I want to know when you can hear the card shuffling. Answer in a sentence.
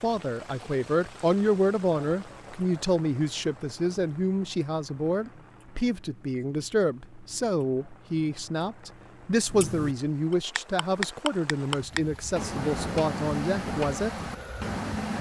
The card shuffling can't be heard in this clip.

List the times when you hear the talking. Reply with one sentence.
You can hear the talking from 0.0 to 14.2 s.